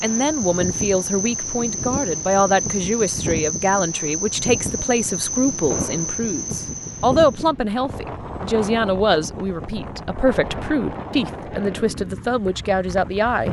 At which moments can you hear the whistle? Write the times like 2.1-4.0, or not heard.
not heard.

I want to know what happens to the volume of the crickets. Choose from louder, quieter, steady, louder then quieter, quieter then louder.
steady.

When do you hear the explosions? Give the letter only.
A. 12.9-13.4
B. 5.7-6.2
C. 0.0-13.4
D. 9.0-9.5
B.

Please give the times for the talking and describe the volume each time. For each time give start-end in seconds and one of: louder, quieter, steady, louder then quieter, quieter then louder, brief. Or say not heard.
0.0-13.4 steady.